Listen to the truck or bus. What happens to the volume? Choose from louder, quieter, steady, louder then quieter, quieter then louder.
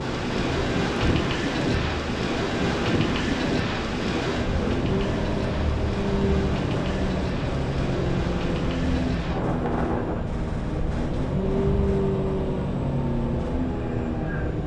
louder.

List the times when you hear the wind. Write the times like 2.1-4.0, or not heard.
0.0-10.3.